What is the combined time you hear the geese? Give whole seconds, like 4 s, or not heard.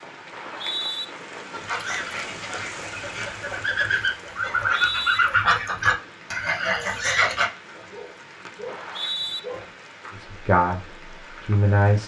6 s.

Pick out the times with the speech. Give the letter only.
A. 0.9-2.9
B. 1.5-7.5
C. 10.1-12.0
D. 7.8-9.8
C.